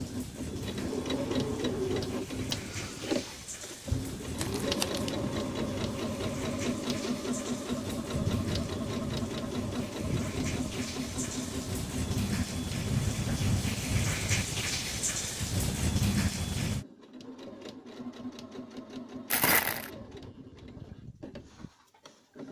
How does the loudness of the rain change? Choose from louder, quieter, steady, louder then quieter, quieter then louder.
louder.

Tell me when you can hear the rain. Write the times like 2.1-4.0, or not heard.
0.0-16.9.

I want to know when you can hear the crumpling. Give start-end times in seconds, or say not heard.
3.7-5.1, 19.3-19.9.